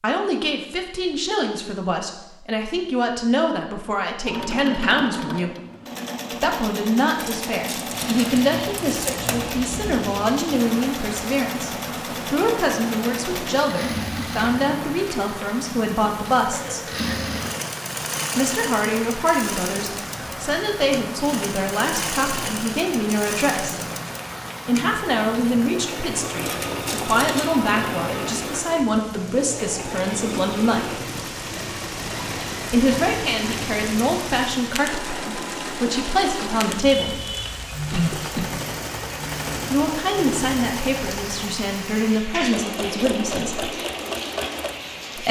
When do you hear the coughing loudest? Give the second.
38 s.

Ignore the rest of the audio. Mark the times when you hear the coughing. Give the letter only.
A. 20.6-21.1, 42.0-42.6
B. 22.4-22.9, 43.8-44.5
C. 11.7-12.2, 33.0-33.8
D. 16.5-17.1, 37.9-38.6
D.